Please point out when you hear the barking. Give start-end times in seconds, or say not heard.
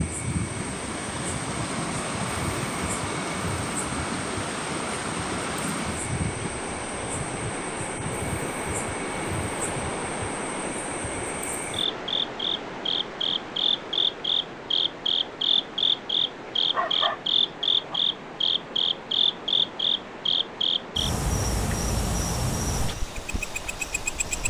16.6-18.0.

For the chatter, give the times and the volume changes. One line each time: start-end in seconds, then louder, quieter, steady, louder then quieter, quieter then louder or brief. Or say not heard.
not heard.